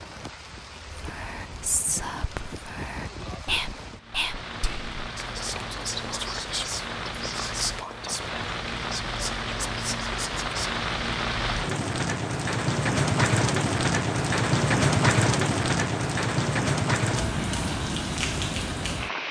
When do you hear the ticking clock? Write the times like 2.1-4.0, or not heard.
not heard.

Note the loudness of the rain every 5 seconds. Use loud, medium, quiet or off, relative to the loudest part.
quiet, medium, loud, loud.